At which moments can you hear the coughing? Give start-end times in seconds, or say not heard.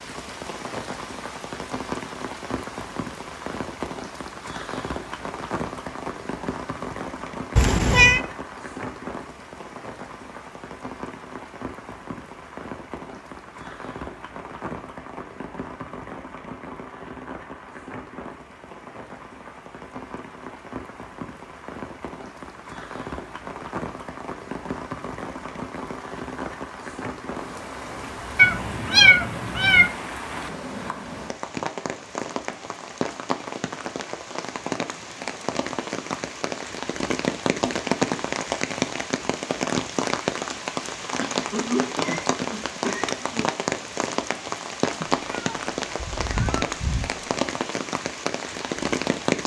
41.1-43.5.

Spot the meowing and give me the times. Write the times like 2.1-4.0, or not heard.
7.5-8.2, 28.4-29.9, 45.0-47.2.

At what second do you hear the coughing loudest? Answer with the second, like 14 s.
42 s.